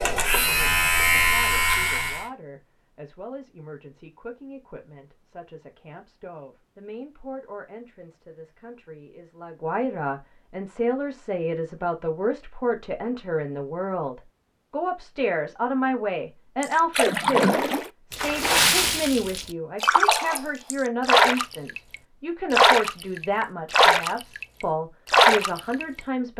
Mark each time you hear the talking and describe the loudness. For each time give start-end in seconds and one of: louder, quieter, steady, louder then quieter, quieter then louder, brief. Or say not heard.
0.2-26.3 louder.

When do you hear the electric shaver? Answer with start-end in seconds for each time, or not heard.
0.0-2.2.